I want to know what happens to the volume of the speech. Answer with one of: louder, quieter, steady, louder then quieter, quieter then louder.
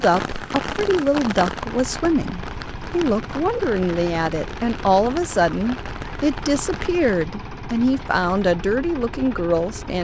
steady.